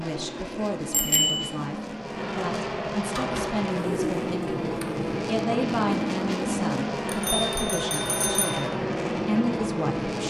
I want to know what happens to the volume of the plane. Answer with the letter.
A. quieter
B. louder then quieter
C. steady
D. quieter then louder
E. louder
E.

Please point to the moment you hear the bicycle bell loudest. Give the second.
1 s.